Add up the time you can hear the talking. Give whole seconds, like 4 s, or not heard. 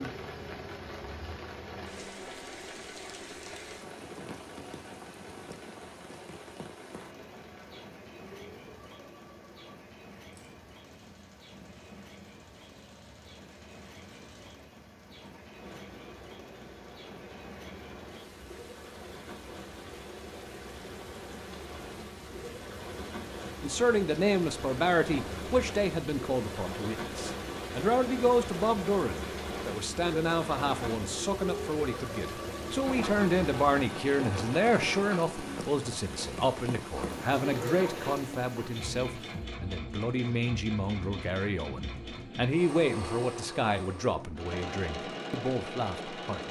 23 s.